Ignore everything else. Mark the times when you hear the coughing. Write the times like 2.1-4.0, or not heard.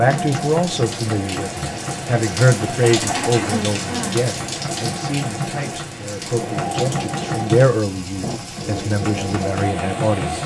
2.7-3.7, 8.2-8.8.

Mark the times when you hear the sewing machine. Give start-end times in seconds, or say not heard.
0.0-10.4.